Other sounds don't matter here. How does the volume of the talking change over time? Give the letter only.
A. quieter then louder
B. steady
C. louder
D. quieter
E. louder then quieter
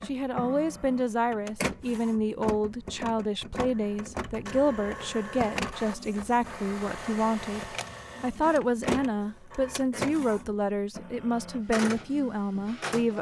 B.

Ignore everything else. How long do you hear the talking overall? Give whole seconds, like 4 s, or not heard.
13 s.